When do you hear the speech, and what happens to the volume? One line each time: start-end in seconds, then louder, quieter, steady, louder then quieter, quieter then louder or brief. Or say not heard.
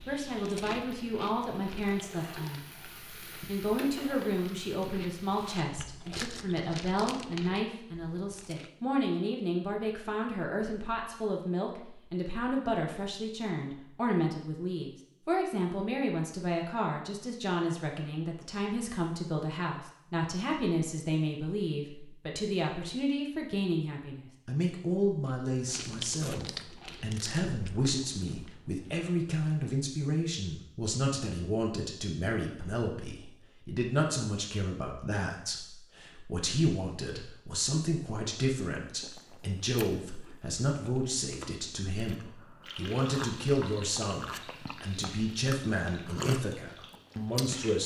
0.1-47.8 steady.